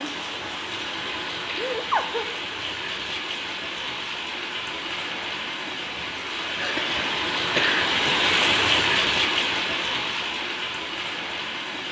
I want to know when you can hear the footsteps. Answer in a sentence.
You can't hear the footsteps here.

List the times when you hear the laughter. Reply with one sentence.
The laughter can be heard from 1.6 to 2.2 s and from 6.5 to 8.2 s.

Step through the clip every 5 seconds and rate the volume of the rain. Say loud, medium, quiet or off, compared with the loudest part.
medium, loud, medium.